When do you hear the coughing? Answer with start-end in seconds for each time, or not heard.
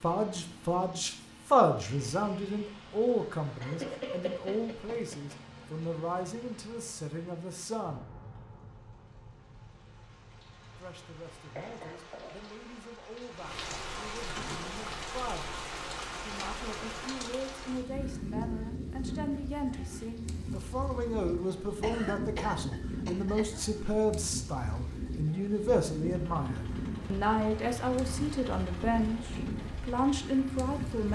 3.6-5.4, 11.6-12.3, 21.8-23.6.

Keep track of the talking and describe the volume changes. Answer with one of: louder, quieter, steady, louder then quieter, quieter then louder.
quieter then louder.